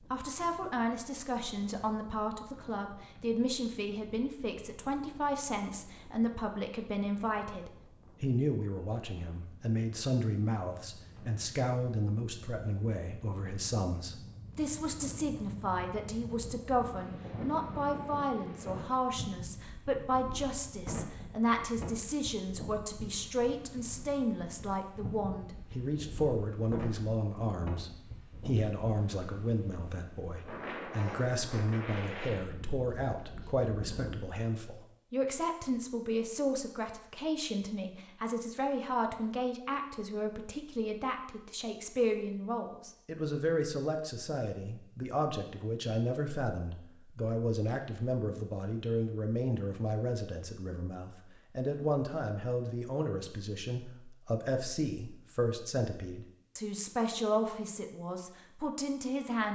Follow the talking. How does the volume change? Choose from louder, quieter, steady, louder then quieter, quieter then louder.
steady.